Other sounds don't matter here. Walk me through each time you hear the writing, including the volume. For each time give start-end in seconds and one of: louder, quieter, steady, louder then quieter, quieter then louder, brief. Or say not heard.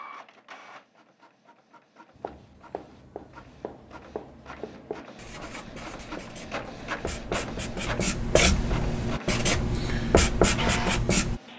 2.1-11.4 louder.